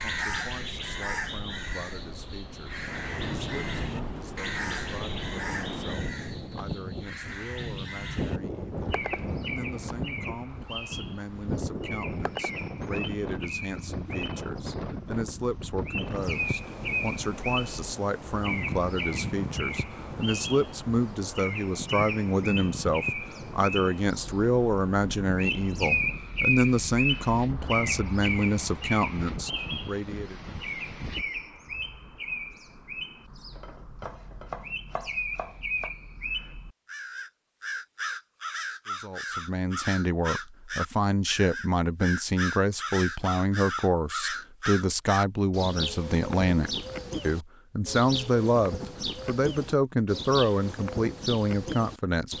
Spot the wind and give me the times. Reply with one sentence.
You can hear the wind from 0.0 to 31.2 s.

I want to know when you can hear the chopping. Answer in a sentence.
You can hear the chopping from 33.5 to 36.0 s.